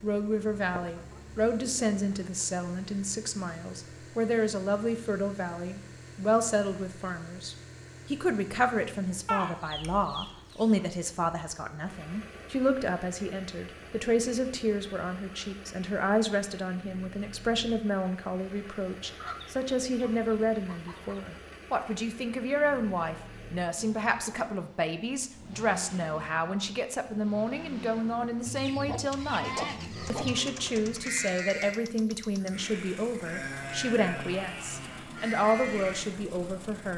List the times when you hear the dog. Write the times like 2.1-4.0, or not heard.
not heard.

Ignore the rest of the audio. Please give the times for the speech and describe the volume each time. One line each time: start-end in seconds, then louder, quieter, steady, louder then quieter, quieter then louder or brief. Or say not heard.
0.0-36.9 steady.